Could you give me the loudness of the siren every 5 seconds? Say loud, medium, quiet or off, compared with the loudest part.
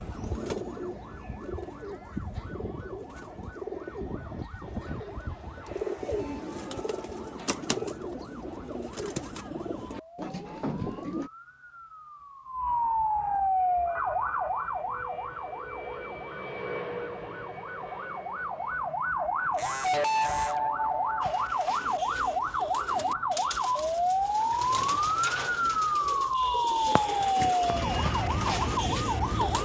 quiet, quiet, loud, medium, loud, loud.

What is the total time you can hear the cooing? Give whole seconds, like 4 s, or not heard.
20 s.